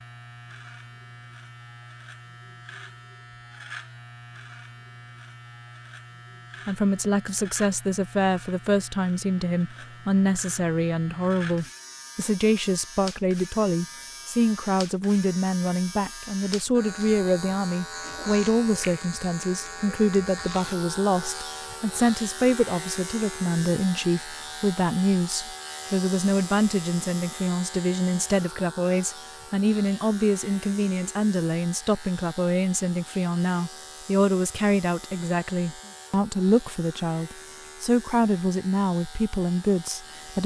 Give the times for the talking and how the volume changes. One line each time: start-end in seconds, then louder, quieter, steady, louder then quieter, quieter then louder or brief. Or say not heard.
6.7-40.4 steady.